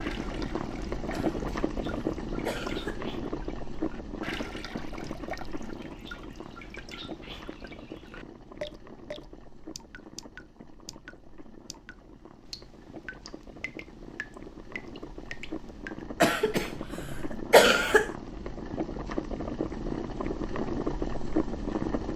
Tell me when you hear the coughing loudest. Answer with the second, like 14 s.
18 s.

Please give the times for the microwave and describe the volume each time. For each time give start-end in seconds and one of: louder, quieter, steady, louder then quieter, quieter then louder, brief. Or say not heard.
not heard.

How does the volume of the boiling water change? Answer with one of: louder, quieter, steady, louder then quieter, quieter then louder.
quieter then louder.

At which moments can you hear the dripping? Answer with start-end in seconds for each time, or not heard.
0.0-16.1.